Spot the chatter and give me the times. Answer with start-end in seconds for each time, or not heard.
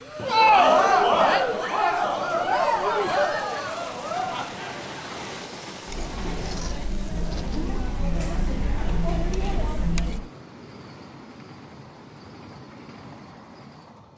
0.0-10.3.